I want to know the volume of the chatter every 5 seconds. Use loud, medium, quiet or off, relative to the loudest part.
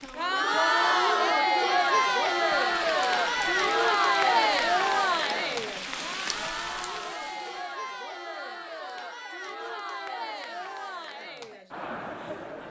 loud, medium, quiet.